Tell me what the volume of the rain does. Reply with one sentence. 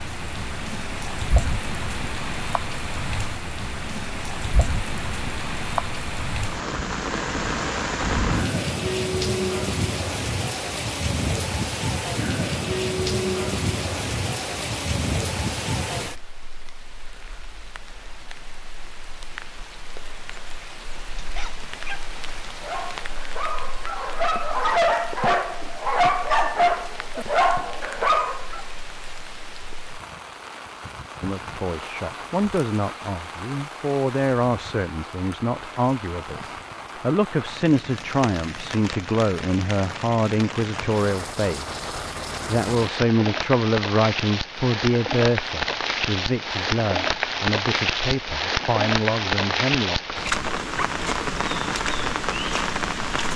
The loudness of the rain goes down, then up.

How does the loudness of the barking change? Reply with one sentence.
The volume of the barking goes up.